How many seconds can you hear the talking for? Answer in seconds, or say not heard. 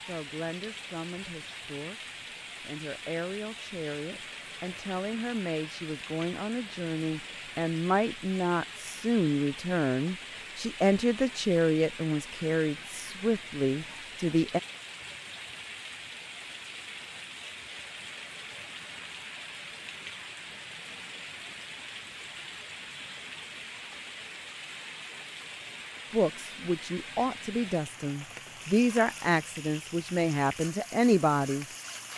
20 s.